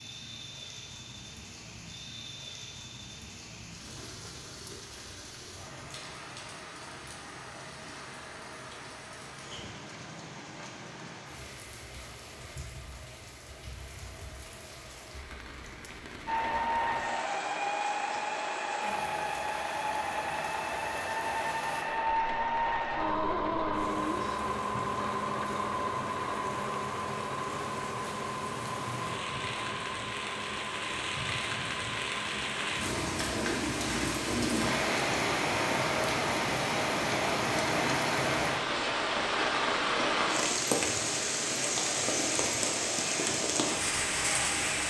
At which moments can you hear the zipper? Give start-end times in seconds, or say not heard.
not heard.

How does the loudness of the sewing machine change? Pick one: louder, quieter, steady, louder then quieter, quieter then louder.
quieter.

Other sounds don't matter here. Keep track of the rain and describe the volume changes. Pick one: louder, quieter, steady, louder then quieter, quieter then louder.
louder.